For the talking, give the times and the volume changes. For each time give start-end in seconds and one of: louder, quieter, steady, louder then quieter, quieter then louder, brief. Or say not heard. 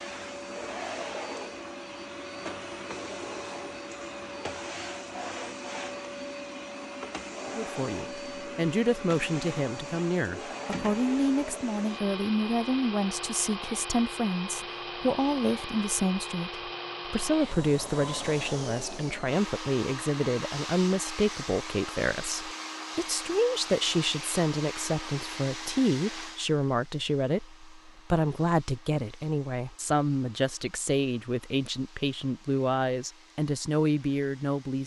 7.5-34.8 steady.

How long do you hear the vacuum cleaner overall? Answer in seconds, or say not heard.
35 s.